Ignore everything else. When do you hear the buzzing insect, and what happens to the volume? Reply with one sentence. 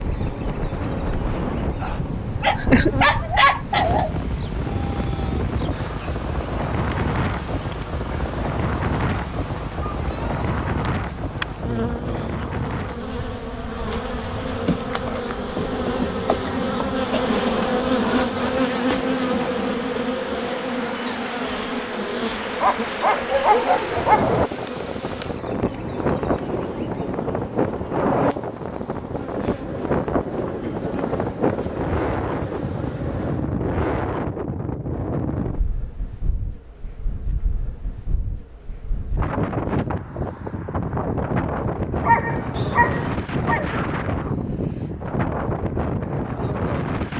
The buzzing insect can be heard from 0.0 to 33.5 s, getting louder then quieter.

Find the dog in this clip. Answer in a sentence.
The dog can be heard from 2.4 to 4.2 s, from 22.6 to 24.4 s and from 42.0 to 43.8 s.